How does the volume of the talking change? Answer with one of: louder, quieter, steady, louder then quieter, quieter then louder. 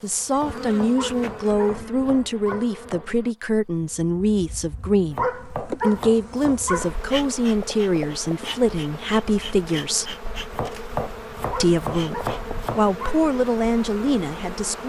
steady.